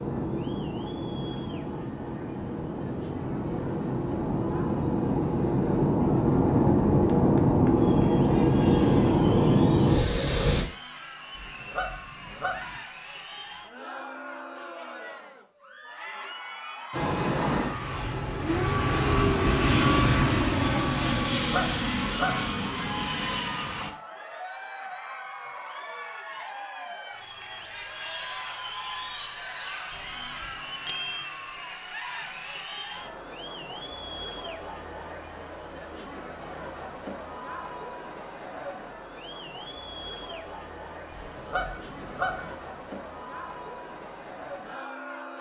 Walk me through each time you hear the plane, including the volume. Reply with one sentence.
The plane can be heard from 0.0 to 10.7 s, getting louder; and from 16.9 to 23.9 s, getting louder then quieter.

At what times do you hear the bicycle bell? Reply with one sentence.
The bicycle bell can be heard from 29.9 to 31.2 s.